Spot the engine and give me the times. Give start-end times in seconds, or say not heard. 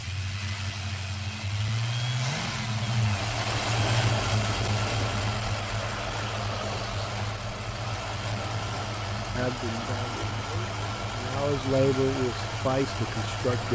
0.0-13.7.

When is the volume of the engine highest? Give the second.
4 s.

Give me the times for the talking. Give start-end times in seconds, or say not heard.
9.3-13.7.